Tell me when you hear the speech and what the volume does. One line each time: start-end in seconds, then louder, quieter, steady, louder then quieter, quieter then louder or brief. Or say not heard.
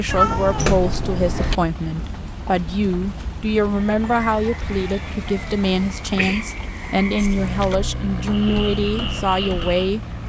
0.0-10.0 steady.